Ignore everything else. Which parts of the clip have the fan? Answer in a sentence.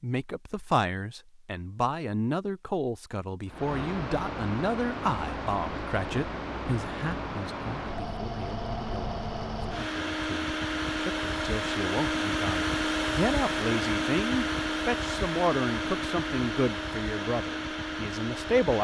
You can hear the fan from 3.5 to 18.7 s.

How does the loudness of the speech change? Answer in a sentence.
The volume of the speech goes down, then up.